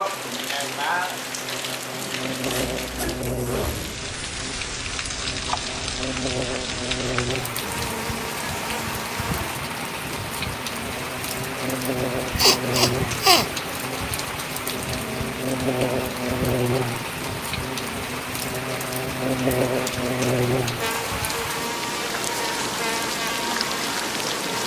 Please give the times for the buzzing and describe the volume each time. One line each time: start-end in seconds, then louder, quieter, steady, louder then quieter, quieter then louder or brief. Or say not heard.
0.0-24.6 louder.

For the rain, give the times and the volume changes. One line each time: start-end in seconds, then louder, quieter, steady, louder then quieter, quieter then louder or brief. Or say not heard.
0.0-24.6 steady.